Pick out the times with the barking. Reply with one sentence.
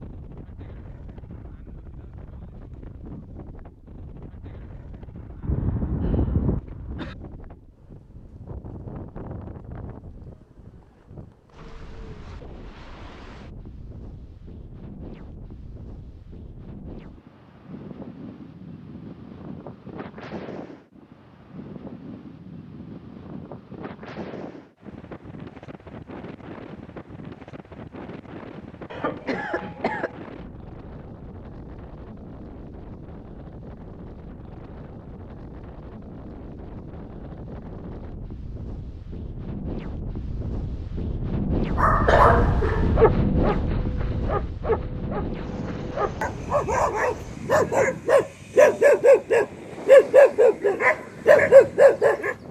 The barking can be heard from 41.8 to 52.4 s.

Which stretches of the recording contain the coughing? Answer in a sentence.
The coughing can be heard from 5.4 to 7.2 s, from 28.9 to 30.1 s and from 42.0 to 43.0 s.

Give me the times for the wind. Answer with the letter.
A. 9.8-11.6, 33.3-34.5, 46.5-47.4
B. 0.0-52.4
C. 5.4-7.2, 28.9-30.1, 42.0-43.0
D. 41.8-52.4
B.